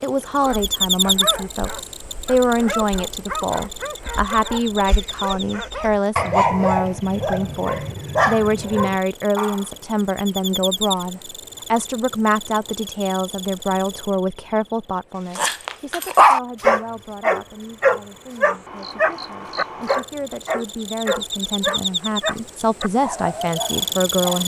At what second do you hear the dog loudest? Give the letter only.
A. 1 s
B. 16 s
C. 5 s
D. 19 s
B.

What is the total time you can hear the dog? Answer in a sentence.
You can hear the dog for 18 seconds altogether.